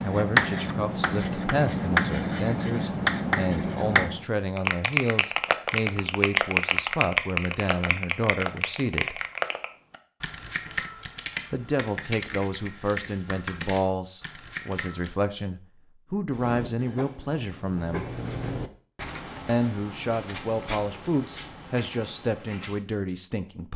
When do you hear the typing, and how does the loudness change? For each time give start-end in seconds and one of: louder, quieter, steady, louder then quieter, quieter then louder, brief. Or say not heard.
4.5-15.1 quieter.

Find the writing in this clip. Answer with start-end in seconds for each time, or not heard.
0.0-4.2, 16.3-22.8.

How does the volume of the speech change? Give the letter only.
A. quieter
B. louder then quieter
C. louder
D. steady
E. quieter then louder
D.